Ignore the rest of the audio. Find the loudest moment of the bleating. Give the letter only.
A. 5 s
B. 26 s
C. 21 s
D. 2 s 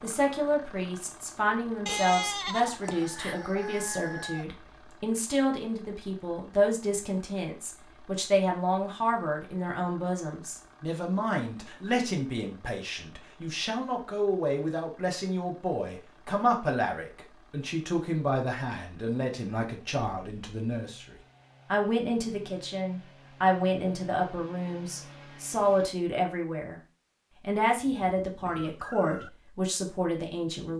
D.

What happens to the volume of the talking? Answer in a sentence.
The loudness of the talking stays about the same.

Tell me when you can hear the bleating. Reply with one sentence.
The bleating can be heard from 1.9 to 3.4 s.